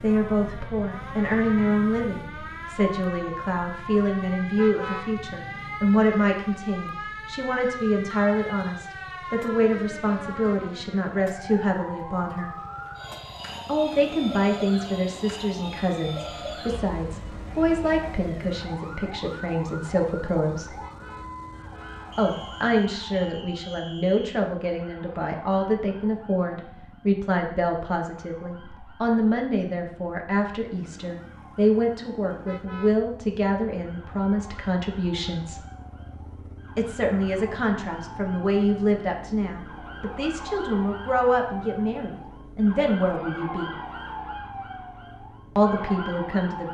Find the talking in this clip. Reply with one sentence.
The talking can be heard from 0.0 to 12.5 s, from 13.7 to 20.8 s, from 22.1 to 35.6 s, from 36.8 to 43.8 s and from 45.5 to 46.7 s.